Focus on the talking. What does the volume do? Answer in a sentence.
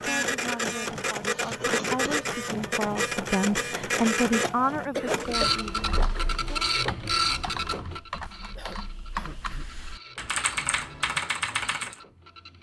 The loudness of the talking goes up, then down.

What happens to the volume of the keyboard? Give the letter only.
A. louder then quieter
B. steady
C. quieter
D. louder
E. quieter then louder
D.